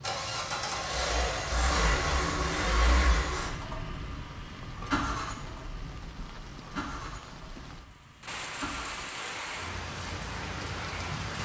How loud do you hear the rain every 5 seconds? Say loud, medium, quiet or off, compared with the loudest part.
medium, medium, loud.